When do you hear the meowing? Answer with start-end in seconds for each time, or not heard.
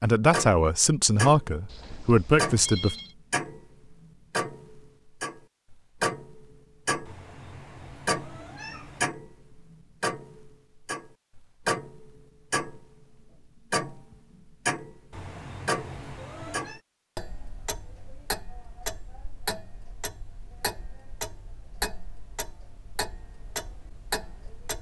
7.0-9.1, 15.1-16.8.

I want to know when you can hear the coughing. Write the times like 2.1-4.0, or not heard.
not heard.